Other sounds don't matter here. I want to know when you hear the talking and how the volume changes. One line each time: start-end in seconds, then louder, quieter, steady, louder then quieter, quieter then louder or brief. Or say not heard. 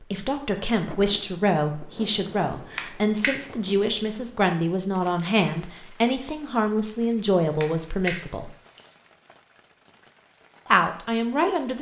0.1-8.5 steady
10.7-11.7 brief.